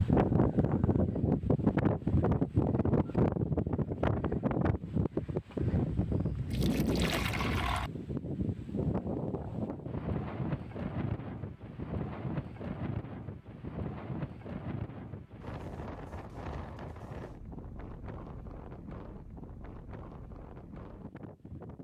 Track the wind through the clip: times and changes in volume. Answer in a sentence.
You can hear the wind from 0.0 to 21.7 s, getting quieter.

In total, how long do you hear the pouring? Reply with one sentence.
The pouring can be heard for 2 seconds in total.